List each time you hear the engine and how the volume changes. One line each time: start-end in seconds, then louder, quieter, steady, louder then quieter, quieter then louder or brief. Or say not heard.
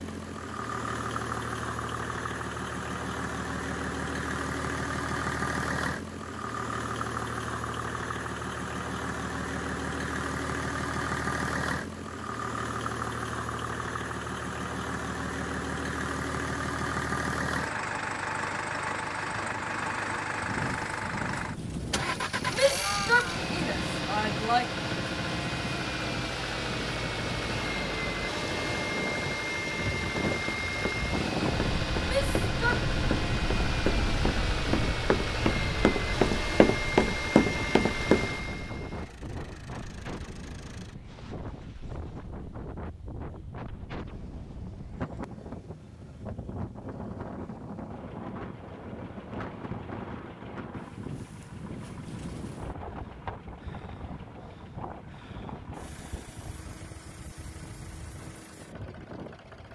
0.0-59.7 quieter.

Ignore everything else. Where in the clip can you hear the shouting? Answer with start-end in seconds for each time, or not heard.
22.5-24.6, 32.0-32.9.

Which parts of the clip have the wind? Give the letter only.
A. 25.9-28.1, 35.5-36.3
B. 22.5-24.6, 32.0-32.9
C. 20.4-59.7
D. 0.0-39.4
C.